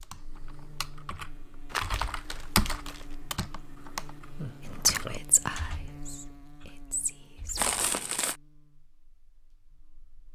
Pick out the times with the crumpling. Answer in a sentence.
You can hear the crumpling from 1.7 to 3.1 s and from 7.5 to 8.3 s.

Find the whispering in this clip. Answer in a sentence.
You can hear the whispering from 4.7 to 7.8 s.